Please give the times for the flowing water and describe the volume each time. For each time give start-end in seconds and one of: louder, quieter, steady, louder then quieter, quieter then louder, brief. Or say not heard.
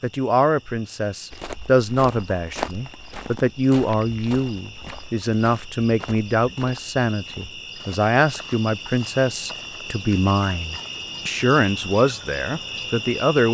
not heard.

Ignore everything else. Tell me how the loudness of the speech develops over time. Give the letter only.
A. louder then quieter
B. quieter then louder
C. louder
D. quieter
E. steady
E.